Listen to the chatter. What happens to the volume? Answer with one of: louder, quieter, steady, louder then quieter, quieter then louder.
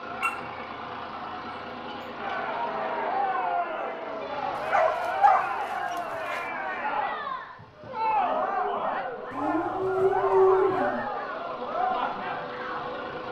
steady.